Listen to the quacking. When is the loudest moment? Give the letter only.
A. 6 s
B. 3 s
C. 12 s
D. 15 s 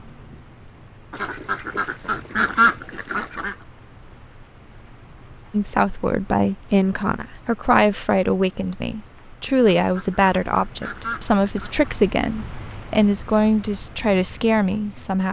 B.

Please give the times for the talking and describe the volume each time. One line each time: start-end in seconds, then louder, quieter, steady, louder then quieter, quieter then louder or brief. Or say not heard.
5.5-15.2 steady.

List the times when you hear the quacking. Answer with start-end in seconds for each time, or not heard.
1.1-3.5, 9.8-11.9.